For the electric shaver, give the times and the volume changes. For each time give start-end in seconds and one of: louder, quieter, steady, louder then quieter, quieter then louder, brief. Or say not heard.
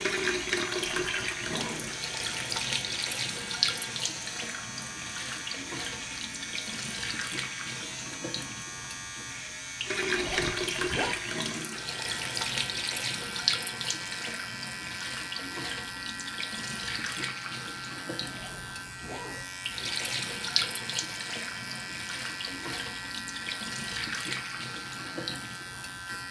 0.0-26.2 steady.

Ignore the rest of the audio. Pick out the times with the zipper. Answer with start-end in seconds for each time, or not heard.
0.7-1.9, 10.2-11.2, 18.2-19.4.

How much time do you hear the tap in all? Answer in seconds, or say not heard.
26 s.